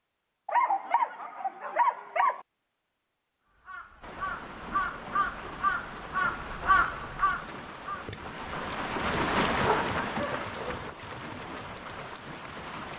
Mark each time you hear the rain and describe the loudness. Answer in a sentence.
You can hear the rain from 4.0 to 12.9 s, getting louder then quieter.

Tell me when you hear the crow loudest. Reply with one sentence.
The loudest moment of the crow is at 7 seconds.